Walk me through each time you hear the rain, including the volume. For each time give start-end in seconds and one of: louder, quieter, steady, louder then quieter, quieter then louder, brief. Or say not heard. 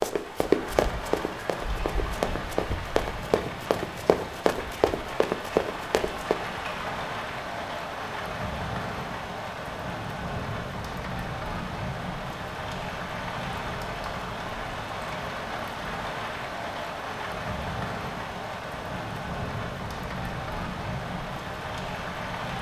0.0-22.5 steady.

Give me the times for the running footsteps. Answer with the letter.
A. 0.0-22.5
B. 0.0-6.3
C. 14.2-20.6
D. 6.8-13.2
B.